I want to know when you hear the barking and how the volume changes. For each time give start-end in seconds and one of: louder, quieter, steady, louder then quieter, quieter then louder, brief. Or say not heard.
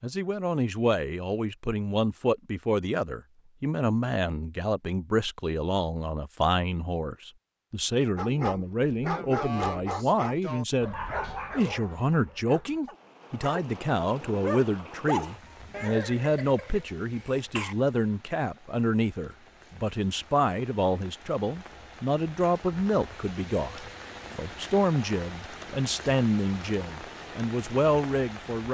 8.2-15.3 quieter then louder.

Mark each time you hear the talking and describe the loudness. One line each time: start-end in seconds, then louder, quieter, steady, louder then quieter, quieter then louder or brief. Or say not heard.
0.0-10.9 steady
11.6-28.6 steady.